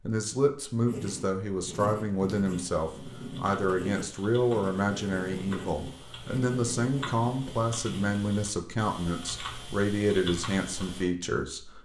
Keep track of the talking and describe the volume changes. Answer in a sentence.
The loudness of the talking stays about the same.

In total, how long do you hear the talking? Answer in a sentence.
The talking can be heard for 12 seconds in total.